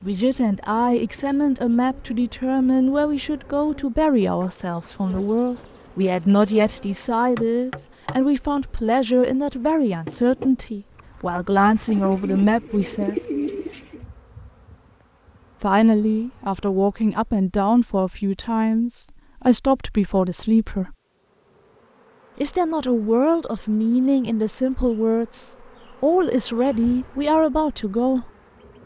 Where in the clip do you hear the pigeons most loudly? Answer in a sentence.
The loudest moment of the pigeons is at 13 seconds.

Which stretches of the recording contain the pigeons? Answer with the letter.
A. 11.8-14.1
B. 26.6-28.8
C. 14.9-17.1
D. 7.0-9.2
A.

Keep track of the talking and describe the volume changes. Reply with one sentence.
The loudness of the talking stays about the same.